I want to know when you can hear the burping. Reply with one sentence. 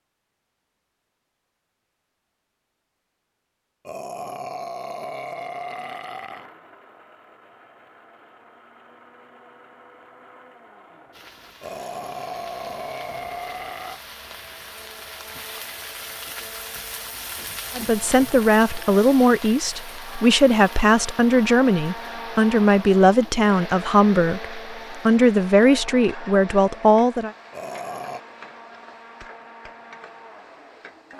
The burping can be heard from 3.9 to 6.5 s, from 11.6 to 14.0 s and from 27.5 to 28.2 s.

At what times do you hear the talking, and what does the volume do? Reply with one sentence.
You can hear the talking from 17.8 to 27.3 s, at a steady volume.